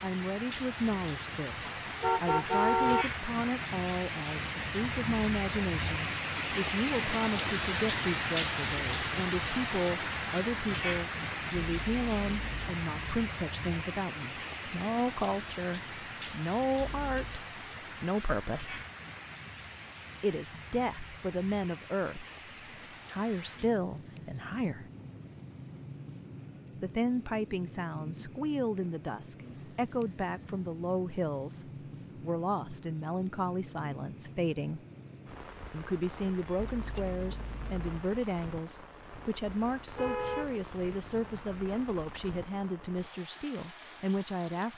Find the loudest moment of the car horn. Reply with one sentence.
The volume of the car horn peaks at 3 seconds.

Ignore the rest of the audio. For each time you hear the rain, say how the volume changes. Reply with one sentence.
You can hear the rain from 0.0 to 44.7 s, getting quieter.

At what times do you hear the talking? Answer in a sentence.
You can hear the talking from 0.0 to 18.9 s, from 20.2 to 22.4 s, from 23.1 to 24.9 s, from 26.8 to 34.8 s and from 35.7 to 44.7 s.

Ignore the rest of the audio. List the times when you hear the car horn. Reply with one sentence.
You can hear the car horn from 1.8 to 3.0 s and from 39.9 to 41.5 s.